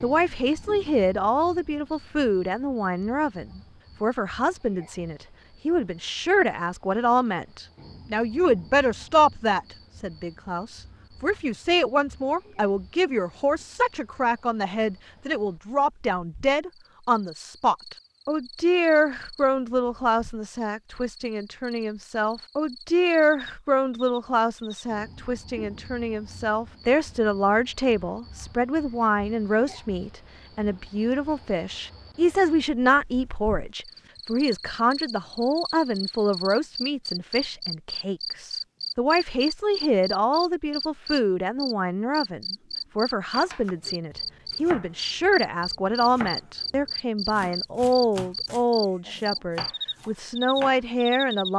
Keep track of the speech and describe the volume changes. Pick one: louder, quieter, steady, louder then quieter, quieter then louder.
steady.